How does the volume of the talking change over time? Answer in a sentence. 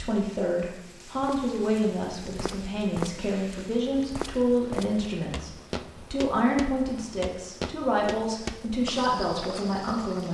The loudness of the talking stays about the same.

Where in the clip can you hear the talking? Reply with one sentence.
The talking can be heard from 0.0 to 10.2 s.